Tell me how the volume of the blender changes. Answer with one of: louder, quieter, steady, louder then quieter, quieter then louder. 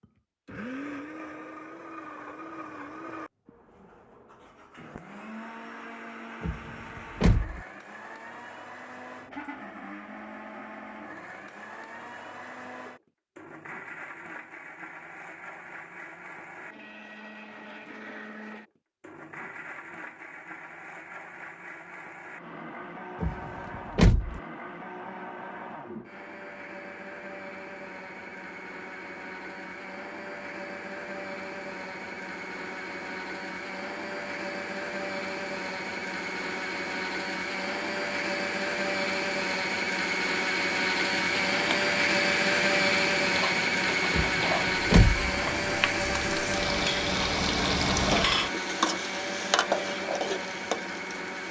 louder.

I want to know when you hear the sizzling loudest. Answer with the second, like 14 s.
48 s.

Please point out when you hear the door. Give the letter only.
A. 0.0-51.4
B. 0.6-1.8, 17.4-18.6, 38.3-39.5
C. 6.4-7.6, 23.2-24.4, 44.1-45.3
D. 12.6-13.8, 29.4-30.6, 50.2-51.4
C.